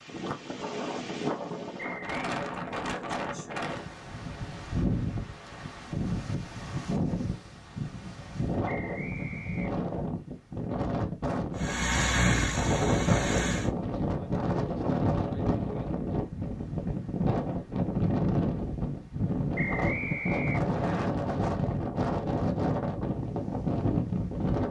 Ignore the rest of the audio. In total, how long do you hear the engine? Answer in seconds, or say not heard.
2 s.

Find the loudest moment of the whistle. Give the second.
20 s.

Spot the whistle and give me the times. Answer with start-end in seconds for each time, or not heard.
1.8-2.2, 8.7-9.8, 19.6-21.1.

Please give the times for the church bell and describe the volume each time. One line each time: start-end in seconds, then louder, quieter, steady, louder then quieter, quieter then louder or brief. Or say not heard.
not heard.